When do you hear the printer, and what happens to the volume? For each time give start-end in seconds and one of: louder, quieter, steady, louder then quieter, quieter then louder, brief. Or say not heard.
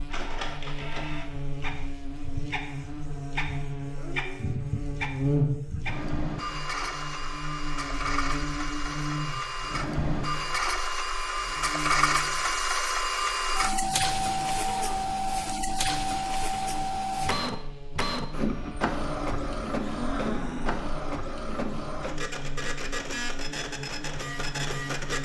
0.0-25.2 louder then quieter.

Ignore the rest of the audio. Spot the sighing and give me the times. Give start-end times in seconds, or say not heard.
4.0-4.6, 14.6-15.1, 19.8-21.0.